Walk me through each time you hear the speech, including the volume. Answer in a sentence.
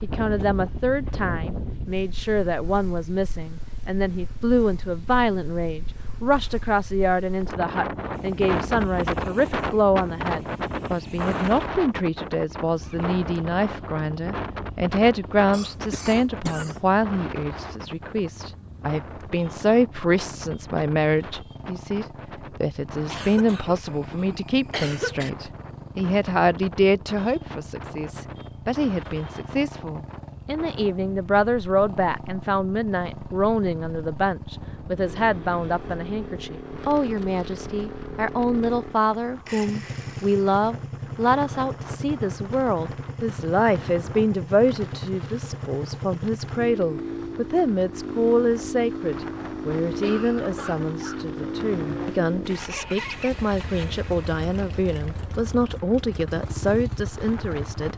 You can hear the speech from 0.0 to 57.9 s, at a steady volume.